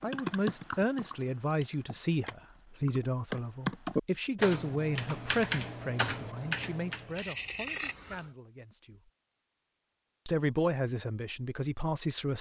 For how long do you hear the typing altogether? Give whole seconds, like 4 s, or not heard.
7 s.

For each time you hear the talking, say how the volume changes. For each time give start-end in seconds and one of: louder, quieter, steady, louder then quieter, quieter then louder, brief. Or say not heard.
0.0-9.1 quieter
10.2-12.3 brief.